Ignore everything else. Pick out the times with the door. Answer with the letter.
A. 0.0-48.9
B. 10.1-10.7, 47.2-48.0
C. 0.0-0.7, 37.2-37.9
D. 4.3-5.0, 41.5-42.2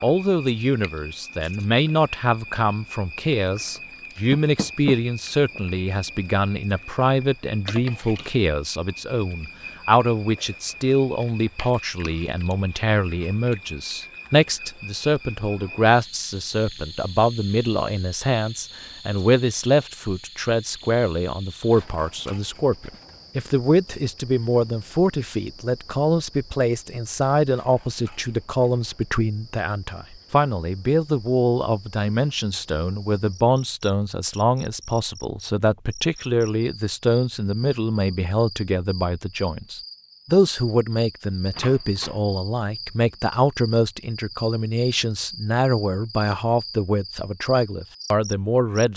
D.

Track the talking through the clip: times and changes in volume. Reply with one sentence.
The talking can be heard from 0.0 to 48.9 s, at a steady volume.